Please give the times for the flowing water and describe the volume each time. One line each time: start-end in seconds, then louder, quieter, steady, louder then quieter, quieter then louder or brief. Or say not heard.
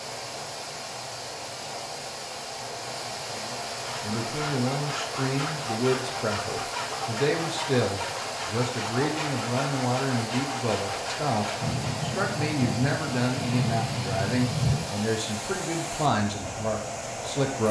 0.0-17.6 steady.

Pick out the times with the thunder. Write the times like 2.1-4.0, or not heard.
11.6-14.8.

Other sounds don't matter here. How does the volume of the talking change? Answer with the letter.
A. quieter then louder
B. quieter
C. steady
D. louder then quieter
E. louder
C.